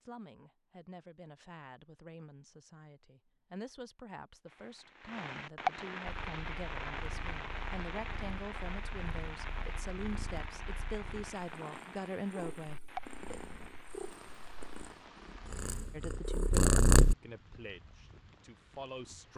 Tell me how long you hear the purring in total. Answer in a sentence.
The purring can be heard for 11 seconds in total.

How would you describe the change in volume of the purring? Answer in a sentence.
The loudness of the purring goes up.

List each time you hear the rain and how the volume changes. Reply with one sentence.
You can hear the rain from 4.5 to 19.3 s, getting quieter.